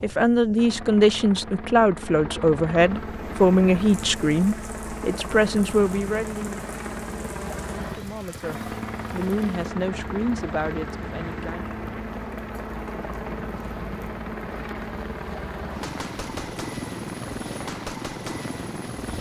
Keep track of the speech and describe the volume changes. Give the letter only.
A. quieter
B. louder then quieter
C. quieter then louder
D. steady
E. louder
A.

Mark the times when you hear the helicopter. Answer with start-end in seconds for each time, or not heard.
0.0-19.1.